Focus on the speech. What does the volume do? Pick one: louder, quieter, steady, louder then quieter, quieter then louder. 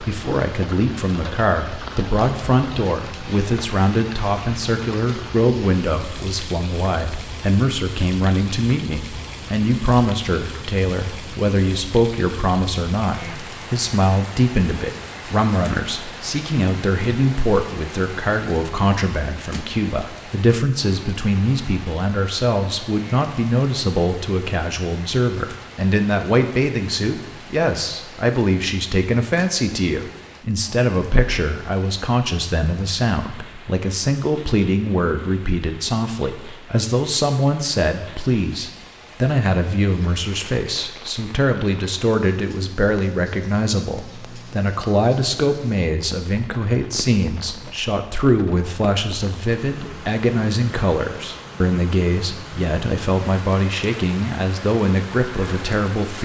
steady.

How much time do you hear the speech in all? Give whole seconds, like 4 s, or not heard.
56 s.